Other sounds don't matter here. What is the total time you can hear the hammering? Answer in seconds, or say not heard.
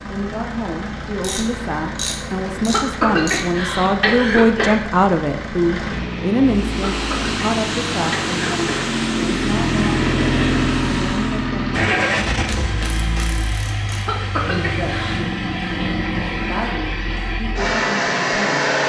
not heard.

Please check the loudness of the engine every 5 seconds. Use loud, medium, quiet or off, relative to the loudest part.
medium, loud, loud, loud.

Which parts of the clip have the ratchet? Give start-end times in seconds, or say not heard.
1.2-3.5, 12.3-14.1.